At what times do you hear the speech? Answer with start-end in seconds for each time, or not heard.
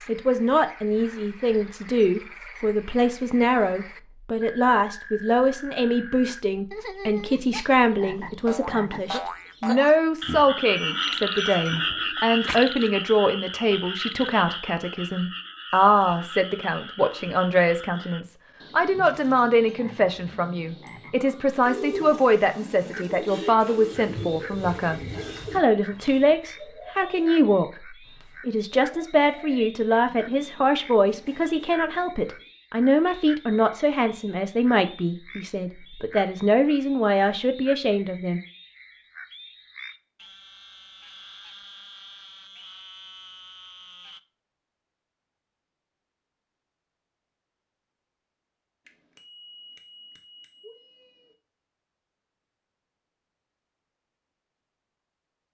0.1-38.4.